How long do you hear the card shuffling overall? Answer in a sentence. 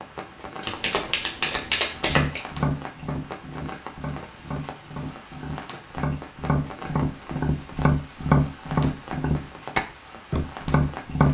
The card shuffling can be heard for 2 seconds in total.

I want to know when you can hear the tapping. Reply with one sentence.
You can hear the tapping from 2.0 to 11.2 s.